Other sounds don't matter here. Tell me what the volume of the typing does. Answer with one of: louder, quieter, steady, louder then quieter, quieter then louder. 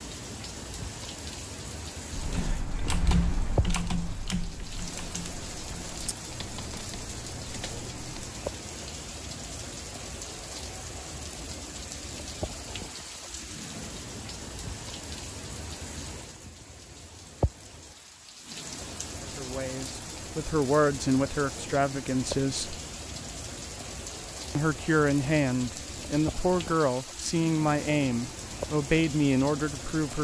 quieter.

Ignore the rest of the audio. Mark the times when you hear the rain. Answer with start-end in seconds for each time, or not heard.
0.0-30.1.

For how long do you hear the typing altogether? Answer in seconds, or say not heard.
6 s.